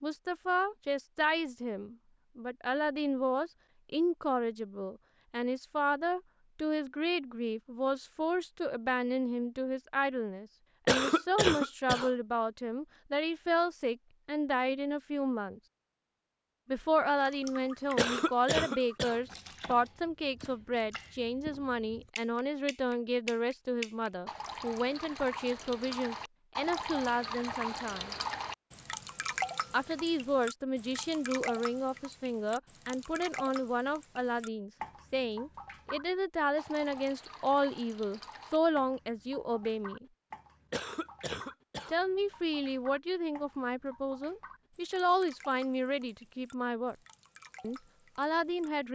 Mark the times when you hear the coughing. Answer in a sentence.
The coughing can be heard from 10.8 to 12.1 s, from 17.9 to 19.2 s and from 40.7 to 42.0 s.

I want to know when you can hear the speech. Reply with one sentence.
You can hear the speech from 0.0 to 15.6 s, from 16.6 to 28.1 s, from 29.7 to 40.0 s, from 41.9 to 47.0 s and from 47.6 to 48.8 s.